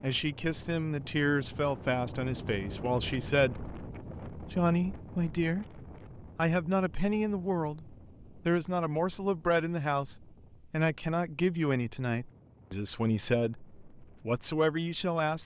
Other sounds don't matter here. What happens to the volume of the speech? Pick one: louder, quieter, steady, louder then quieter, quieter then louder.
steady.